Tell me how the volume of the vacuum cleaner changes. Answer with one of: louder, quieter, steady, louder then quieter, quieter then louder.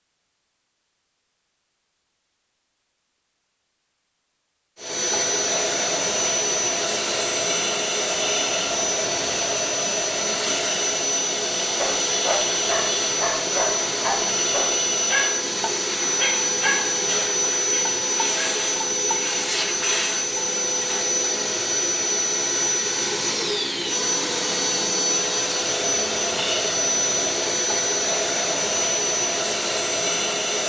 steady.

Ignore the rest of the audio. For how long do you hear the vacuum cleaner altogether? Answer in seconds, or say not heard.
26 s.